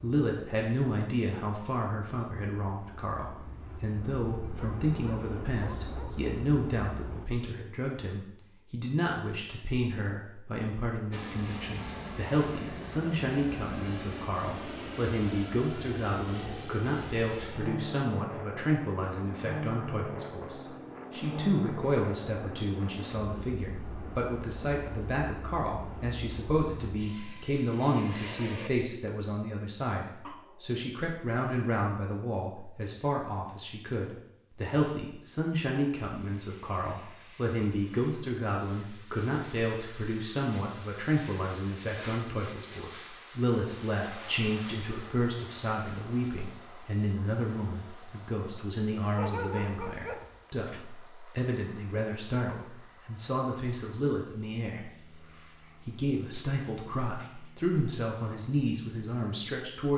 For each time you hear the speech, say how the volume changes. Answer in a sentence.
The speech can be heard from 0.0 to 59.9 s, at a steady volume.